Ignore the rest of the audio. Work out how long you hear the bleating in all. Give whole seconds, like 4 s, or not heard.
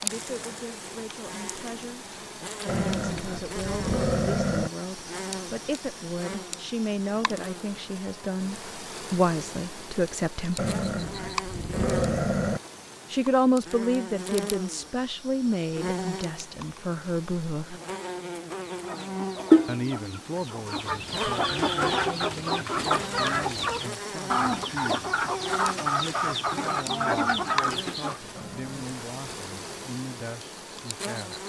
not heard.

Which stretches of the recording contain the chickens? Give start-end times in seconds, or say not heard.
18.5-28.4.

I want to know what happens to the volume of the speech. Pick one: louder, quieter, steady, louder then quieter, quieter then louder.
louder then quieter.